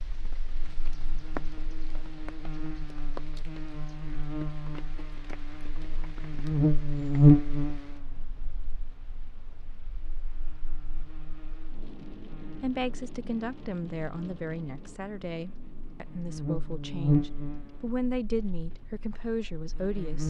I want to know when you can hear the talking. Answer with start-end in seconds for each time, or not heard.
12.6-20.2.